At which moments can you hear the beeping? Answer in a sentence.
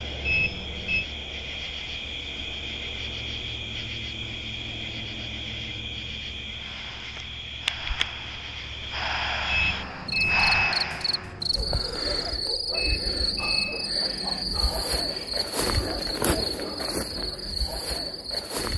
You can hear the beeping from 0.2 to 1.1 s, from 9.4 to 10.8 s and from 12.7 to 13.9 s.